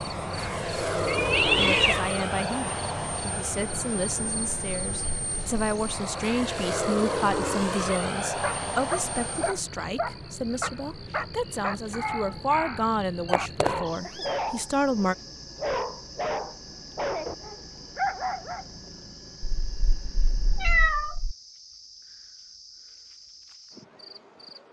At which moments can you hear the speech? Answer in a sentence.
You can hear the speech from 1.6 to 15.2 s.